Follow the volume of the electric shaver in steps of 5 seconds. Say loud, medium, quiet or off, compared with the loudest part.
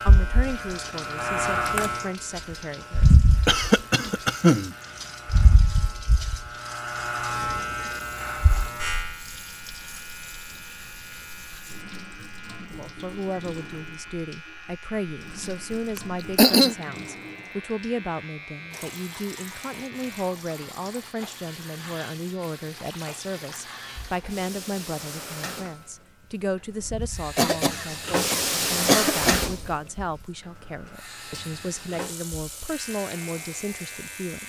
loud, loud, quiet, quiet, quiet, quiet, quiet.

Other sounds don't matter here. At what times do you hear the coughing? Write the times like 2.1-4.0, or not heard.
3.5-4.8, 15.9-16.8, 27.4-29.4.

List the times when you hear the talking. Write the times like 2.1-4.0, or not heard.
0.1-3.1, 12.6-34.4.